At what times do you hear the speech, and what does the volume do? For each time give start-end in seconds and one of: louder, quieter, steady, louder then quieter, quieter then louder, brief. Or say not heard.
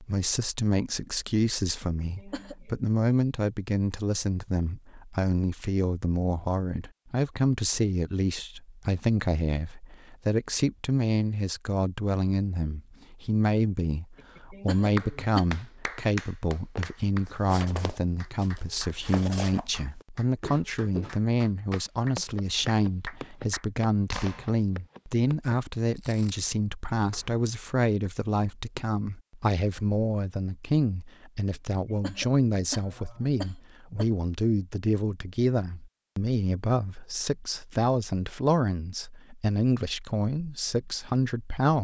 0.0-41.7 steady.